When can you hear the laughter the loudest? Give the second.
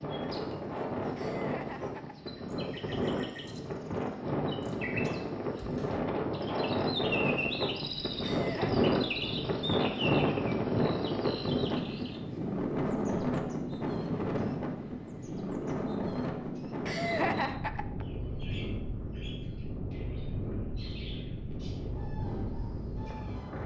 17 s.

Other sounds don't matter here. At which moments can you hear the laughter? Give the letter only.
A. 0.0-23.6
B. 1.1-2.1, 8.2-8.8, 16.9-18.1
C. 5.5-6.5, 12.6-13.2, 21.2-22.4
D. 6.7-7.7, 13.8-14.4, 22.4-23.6
B.